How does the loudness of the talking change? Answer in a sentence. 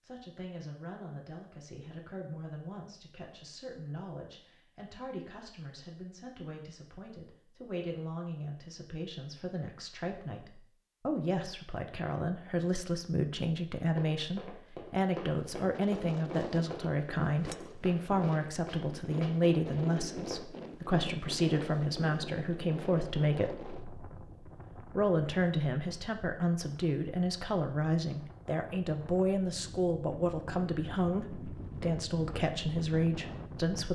The loudness of the talking goes up.